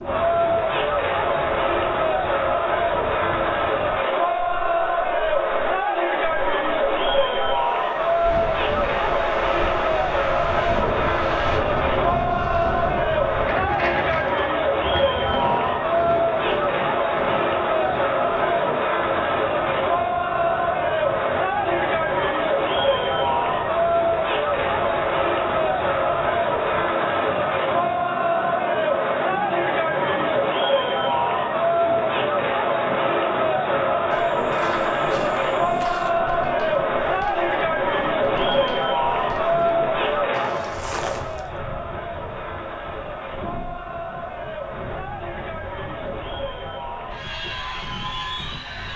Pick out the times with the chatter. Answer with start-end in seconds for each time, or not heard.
0.0-48.9.